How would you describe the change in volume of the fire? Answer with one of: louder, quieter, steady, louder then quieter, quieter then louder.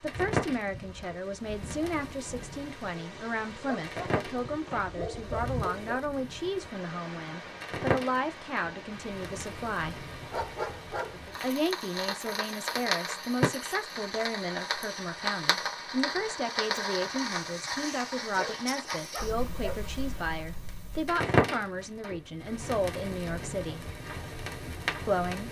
louder.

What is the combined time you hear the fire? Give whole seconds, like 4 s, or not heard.
25 s.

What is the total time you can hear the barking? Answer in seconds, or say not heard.
5 s.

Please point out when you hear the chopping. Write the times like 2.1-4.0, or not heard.
not heard.